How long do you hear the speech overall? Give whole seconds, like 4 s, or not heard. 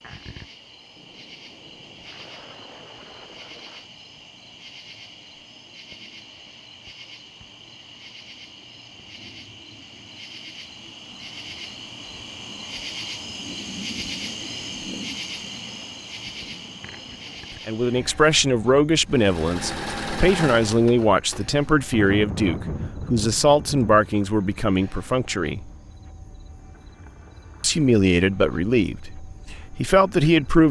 11 s.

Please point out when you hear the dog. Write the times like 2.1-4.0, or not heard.
not heard.